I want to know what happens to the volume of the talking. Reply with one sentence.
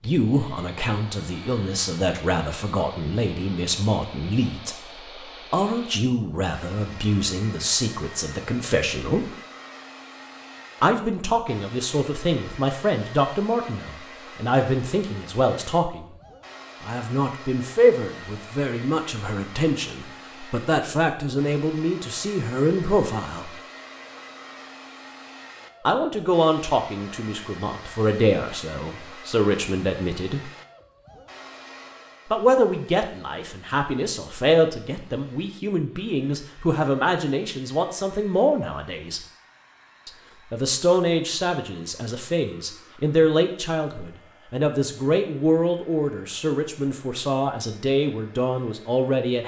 The volume of the talking stays about the same.